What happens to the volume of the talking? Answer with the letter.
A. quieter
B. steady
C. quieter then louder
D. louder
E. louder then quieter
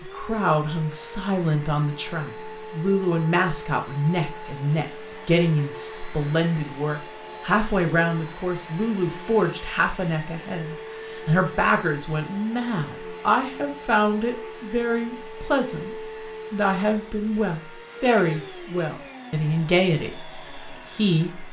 B.